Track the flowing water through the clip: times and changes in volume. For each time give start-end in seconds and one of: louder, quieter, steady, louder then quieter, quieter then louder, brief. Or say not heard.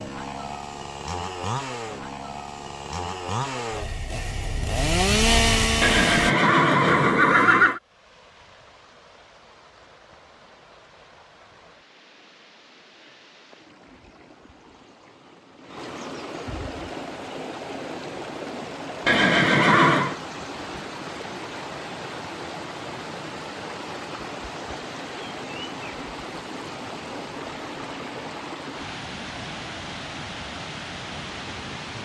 7.7-32.0 louder.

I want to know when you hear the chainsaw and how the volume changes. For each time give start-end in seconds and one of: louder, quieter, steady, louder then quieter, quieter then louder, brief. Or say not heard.
0.0-6.3 louder.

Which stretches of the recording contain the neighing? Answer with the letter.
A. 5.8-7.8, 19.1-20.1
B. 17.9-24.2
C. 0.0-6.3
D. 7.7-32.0
A.